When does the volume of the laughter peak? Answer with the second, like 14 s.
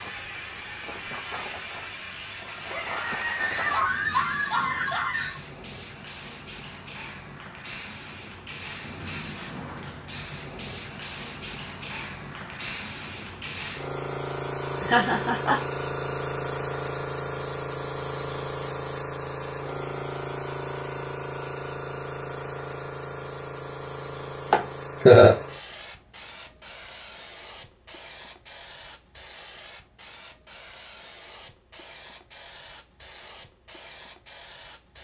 25 s.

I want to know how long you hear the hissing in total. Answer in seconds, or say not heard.
35 s.